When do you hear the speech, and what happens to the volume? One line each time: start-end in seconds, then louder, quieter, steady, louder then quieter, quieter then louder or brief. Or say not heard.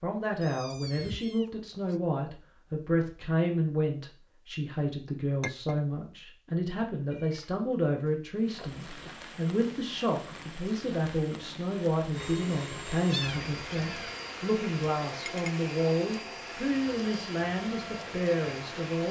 0.0-19.0 steady.